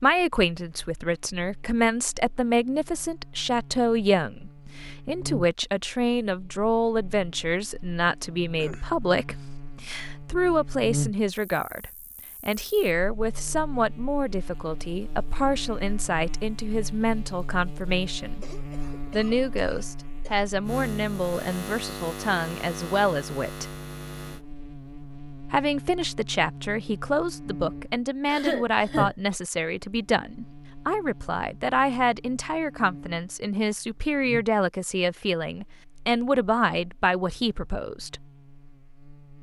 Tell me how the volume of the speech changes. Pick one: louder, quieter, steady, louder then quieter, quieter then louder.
steady.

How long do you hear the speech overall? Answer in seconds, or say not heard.
36 s.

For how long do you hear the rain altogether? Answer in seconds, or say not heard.
not heard.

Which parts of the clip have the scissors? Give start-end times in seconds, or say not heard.
not heard.